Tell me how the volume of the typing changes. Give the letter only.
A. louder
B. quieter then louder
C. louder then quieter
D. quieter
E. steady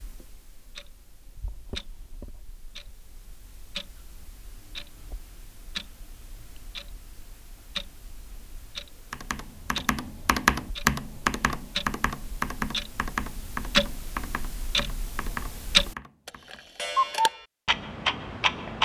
D.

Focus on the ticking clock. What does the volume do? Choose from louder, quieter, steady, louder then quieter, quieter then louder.
louder.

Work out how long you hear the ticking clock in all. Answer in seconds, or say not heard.
19 s.